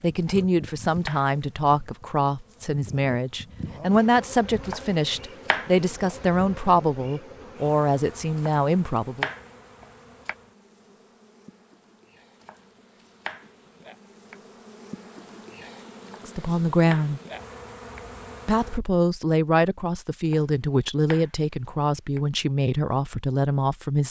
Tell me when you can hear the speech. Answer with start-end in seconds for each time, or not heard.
0.0-9.3, 16.2-17.2, 18.4-24.0.